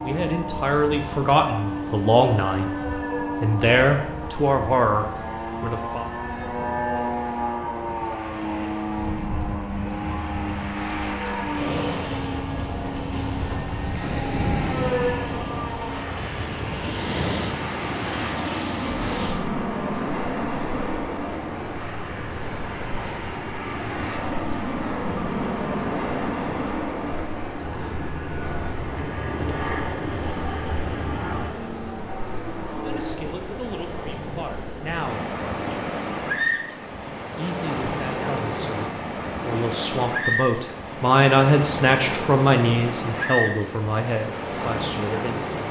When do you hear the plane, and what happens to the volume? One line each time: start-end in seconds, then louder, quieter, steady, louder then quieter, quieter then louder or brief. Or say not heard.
0.0-33.1 steady.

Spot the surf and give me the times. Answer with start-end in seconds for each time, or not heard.
0.0-45.6.